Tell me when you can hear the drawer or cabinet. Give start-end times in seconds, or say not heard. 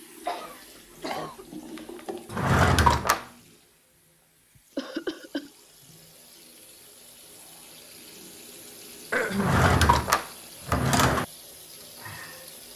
2.3-3.2, 9.3-11.2.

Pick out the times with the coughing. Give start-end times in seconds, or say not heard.
0.2-2.0, 4.8-5.5, 9.1-9.6.